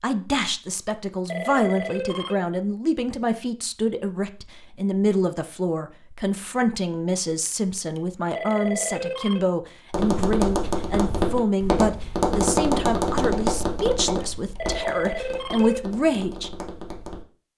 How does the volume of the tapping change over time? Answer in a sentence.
The volume of the tapping goes down.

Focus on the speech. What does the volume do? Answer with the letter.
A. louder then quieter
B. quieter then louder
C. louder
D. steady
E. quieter
D.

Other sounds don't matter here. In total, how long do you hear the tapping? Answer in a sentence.
The tapping can be heard for 7 seconds in total.